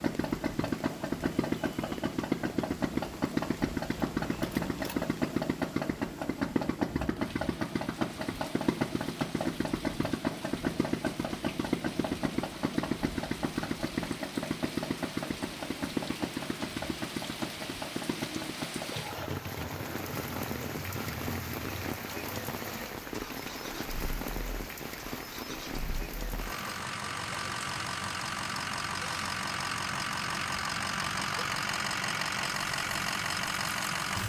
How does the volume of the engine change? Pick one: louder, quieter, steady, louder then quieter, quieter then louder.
quieter then louder.